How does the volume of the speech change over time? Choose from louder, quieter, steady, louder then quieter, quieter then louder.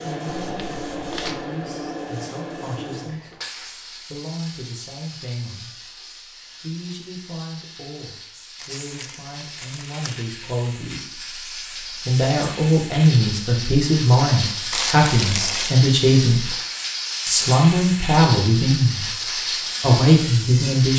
louder.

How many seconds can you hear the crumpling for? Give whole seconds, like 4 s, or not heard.
4 s.